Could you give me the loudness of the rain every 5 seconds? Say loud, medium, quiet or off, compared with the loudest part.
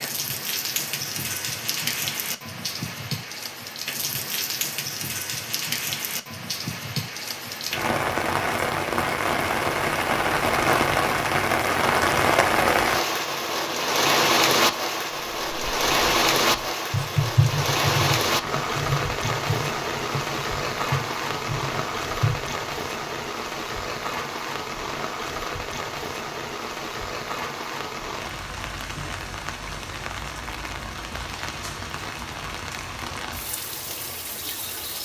medium, medium, loud, loud, medium, medium, quiet.